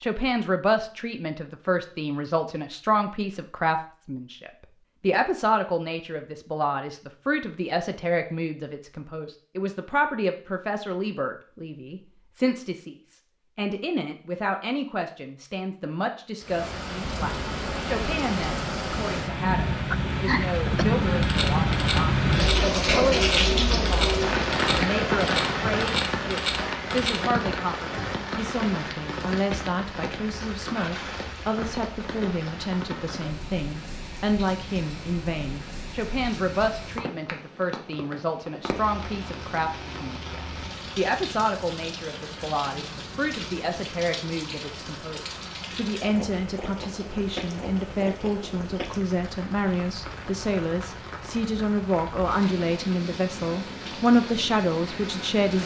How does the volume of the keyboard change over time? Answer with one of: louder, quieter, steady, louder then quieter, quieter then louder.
steady.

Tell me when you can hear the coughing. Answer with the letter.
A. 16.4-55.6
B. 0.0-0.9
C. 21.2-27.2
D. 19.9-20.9
D.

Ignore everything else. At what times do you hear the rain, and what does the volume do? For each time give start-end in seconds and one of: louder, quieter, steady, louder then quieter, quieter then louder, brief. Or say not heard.
16.4-55.6 quieter.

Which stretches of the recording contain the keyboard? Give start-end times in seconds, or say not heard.
21.2-27.2.